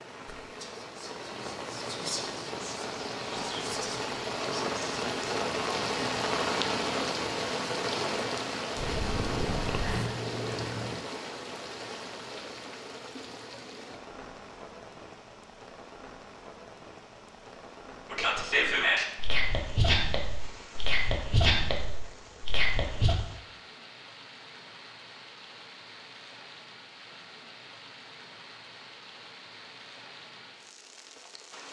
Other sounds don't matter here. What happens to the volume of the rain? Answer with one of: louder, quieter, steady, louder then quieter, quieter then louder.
quieter.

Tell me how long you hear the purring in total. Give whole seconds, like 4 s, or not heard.
2 s.